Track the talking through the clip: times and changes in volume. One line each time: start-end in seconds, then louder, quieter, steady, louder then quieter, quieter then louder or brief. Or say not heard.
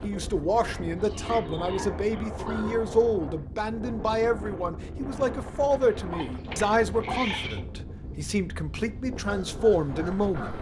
0.0-10.5 steady.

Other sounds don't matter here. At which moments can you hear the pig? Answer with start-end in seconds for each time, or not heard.
0.2-2.8, 6.1-7.7.